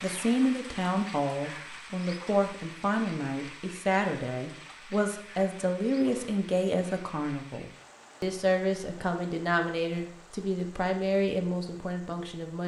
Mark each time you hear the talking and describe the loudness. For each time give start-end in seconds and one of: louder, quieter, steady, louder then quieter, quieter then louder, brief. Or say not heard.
0.0-12.6 steady.